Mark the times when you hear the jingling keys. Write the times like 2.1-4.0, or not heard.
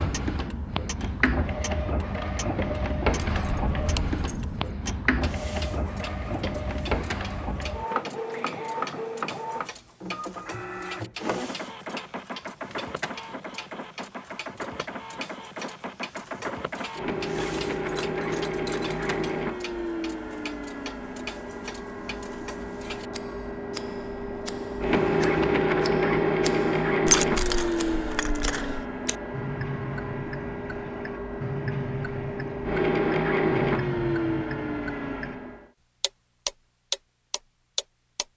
3.1-4.8, 17.4-19.1, 27.1-28.9.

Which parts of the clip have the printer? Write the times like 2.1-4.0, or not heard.
0.0-35.6.